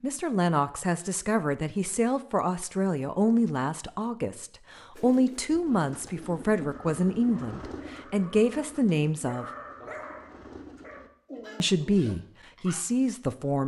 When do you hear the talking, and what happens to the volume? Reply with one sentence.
The talking can be heard from 0.0 to 9.4 s, at a steady volume; and briefly from 11.6 to 13.6 s.